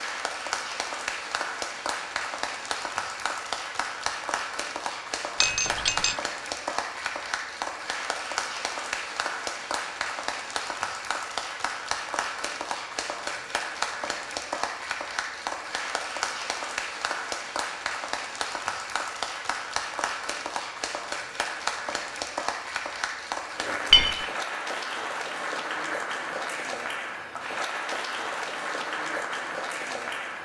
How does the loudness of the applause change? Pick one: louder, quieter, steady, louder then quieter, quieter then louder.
steady.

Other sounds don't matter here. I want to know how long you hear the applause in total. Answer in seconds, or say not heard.
30 s.